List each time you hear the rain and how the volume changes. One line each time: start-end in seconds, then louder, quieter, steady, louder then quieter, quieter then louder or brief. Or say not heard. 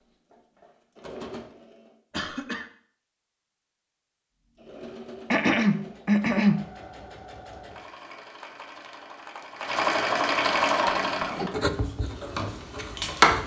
not heard.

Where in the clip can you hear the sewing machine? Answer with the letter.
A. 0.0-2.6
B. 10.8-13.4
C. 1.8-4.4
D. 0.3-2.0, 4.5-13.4
D.